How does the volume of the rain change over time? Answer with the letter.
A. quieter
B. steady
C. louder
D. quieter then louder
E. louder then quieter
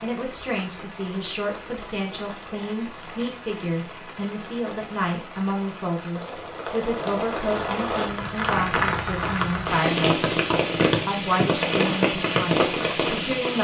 C.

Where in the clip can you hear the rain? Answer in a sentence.
The rain can be heard from 0.0 to 13.5 s.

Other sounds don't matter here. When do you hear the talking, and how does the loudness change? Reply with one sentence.
The talking can be heard from 0.0 to 10.2 s, at a steady volume; and briefly from 11.1 to 13.5 s.